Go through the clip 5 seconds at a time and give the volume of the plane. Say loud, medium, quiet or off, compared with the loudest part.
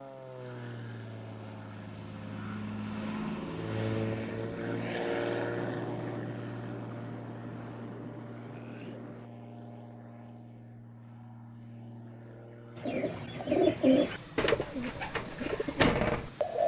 loud, loud, medium, medium.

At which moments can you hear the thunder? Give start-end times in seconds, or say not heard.
5.5-9.3.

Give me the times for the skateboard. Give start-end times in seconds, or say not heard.
not heard.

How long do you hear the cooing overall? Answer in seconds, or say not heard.
4 s.